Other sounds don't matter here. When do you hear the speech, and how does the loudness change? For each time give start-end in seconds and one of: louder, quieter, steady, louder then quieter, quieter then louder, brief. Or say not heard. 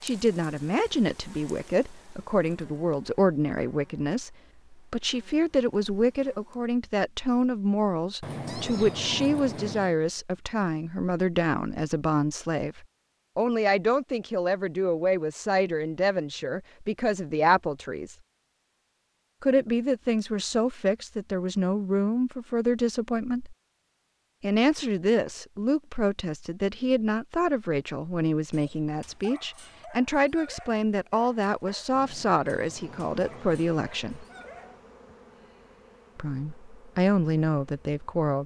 0.0-18.1 steady
19.4-23.6 steady
24.4-34.2 steady
36.1-38.4 brief.